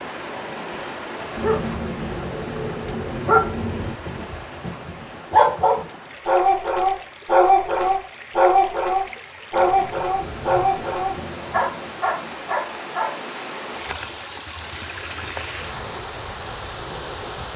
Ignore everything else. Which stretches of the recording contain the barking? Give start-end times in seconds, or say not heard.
1.4-13.1.